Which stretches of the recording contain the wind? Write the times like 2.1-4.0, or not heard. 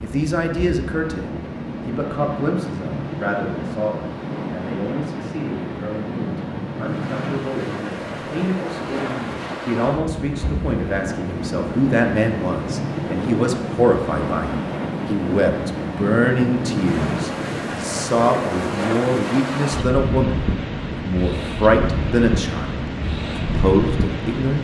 0.0-24.6.